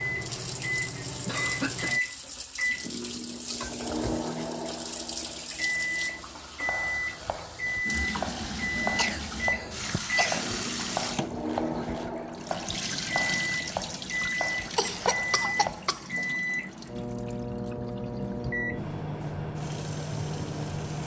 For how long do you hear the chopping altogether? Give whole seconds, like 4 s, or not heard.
9 s.